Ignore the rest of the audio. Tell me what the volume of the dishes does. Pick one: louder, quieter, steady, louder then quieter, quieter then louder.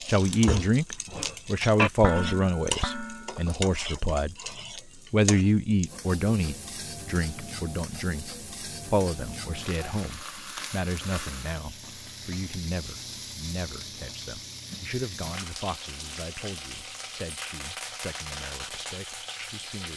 louder then quieter.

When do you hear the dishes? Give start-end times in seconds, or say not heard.
0.2-5.2.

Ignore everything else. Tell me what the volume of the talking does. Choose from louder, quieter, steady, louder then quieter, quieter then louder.
quieter.